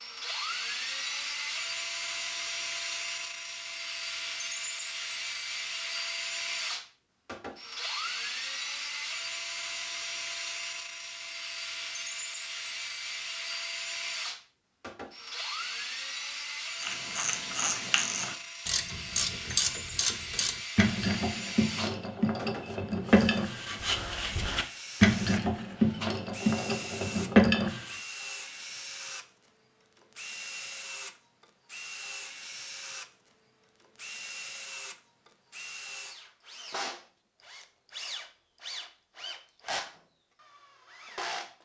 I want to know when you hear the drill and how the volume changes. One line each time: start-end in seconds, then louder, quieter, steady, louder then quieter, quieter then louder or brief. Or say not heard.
0.0-41.6 quieter.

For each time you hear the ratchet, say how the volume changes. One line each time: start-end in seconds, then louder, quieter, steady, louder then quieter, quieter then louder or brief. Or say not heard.
16.8-27.9 louder.